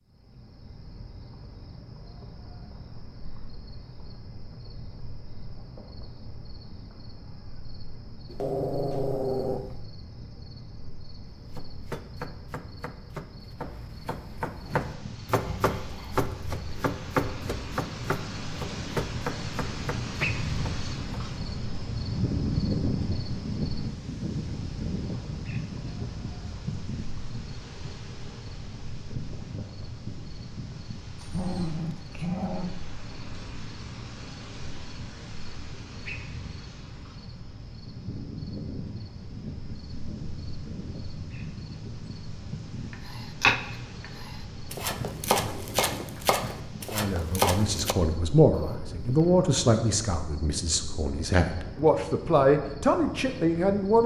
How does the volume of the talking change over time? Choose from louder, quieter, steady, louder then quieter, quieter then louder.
quieter then louder.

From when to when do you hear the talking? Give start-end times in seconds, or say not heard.
46.9-54.0.